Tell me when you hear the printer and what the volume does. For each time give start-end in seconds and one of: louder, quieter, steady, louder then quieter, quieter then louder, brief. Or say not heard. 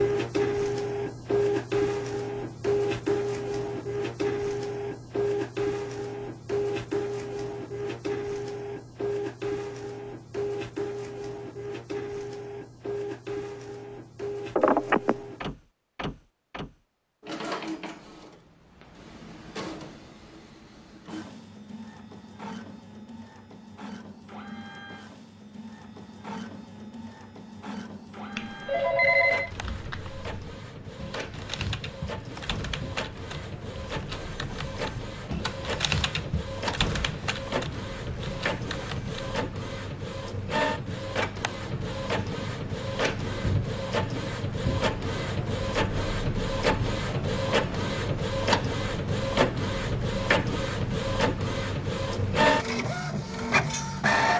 0.0-54.3 quieter then louder.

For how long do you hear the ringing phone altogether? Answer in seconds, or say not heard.
2 s.